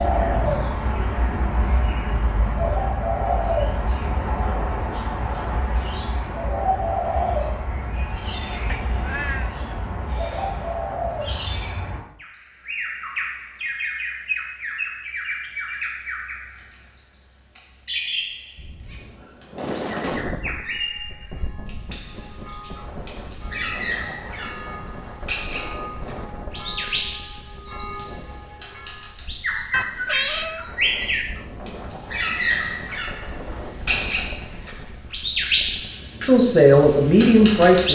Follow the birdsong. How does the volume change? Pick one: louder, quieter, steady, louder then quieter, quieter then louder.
quieter then louder.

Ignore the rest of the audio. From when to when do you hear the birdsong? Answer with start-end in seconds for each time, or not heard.
0.0-37.8.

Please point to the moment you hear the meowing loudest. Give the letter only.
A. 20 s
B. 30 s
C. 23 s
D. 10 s
B.